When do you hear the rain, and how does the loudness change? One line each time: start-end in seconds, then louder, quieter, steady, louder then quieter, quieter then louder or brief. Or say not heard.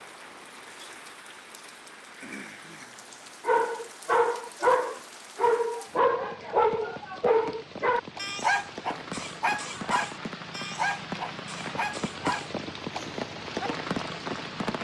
0.0-14.8 louder.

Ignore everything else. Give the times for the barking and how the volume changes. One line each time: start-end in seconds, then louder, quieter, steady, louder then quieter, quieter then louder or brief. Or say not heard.
3.5-13.8 quieter.